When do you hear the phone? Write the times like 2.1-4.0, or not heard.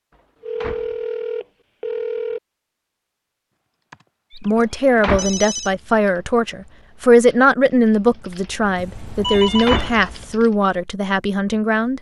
0.4-2.4, 4.3-5.7, 8.8-9.9.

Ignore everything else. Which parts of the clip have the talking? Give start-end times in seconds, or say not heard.
4.3-11.9.